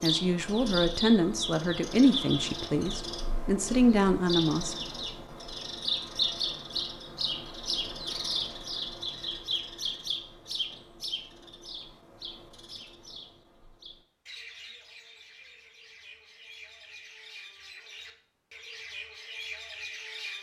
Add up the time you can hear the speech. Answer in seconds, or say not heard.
5 s.